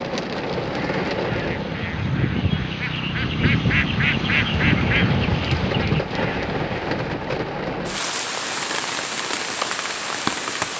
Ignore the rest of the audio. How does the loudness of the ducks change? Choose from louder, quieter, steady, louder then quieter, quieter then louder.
louder then quieter.